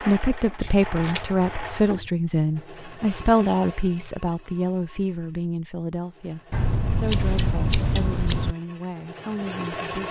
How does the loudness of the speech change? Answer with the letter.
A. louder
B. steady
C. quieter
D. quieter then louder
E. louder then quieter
C.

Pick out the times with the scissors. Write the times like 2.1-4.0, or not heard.
0.6-2.1, 6.5-8.6.